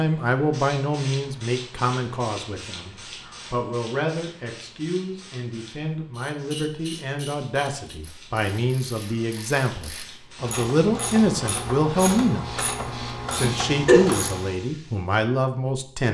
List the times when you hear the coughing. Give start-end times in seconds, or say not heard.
13.4-14.1.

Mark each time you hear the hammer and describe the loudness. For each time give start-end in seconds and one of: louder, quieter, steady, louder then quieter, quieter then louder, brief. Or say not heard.
not heard.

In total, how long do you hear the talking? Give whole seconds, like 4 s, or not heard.
15 s.